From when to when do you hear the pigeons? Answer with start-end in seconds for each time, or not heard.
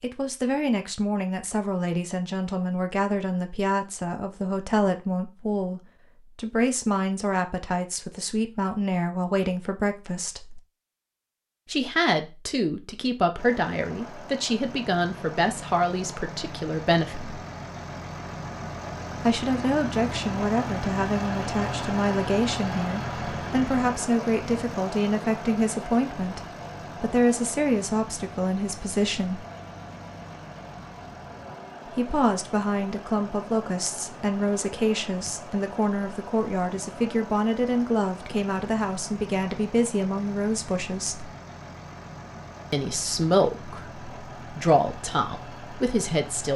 not heard.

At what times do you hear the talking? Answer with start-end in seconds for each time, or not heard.
0.0-10.6, 11.7-17.4, 19.2-29.4, 31.9-41.3, 42.7-46.5.